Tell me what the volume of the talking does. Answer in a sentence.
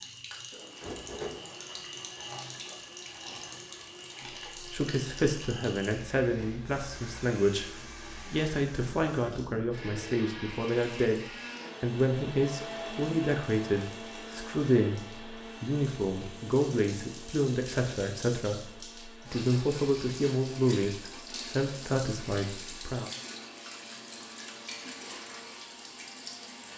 The volume of the talking stays about the same.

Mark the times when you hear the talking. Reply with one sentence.
You can hear the talking from 4.7 to 11.2 s, from 11.8 to 15.0 s and from 15.6 to 23.1 s.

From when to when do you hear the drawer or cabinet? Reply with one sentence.
You can hear the drawer or cabinet from 0.8 to 1.4 s.